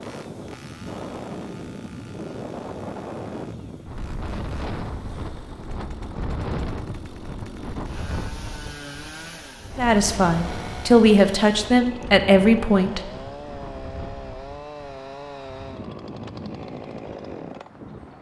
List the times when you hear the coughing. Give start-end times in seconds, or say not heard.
not heard.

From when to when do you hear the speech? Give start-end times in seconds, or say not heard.
9.8-13.1.